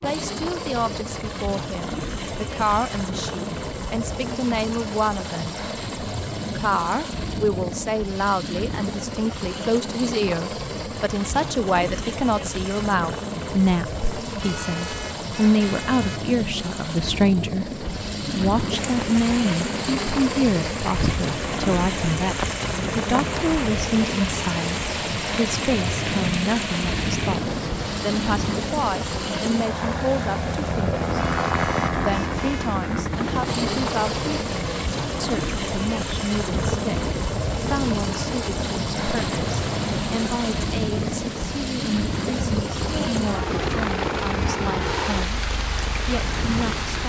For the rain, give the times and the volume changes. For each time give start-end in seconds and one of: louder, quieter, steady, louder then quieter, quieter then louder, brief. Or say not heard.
18.7-47.0 steady.